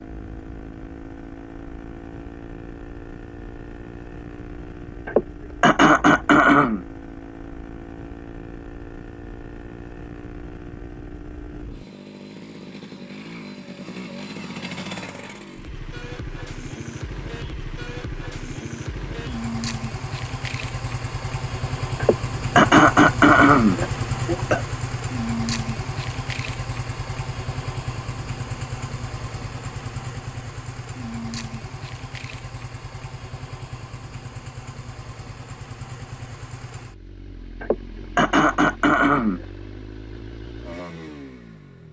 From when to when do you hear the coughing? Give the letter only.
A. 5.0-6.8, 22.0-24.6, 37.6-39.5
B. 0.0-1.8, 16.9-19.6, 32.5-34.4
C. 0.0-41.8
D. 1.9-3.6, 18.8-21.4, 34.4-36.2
A.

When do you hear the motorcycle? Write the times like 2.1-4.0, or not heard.
0.0-41.8.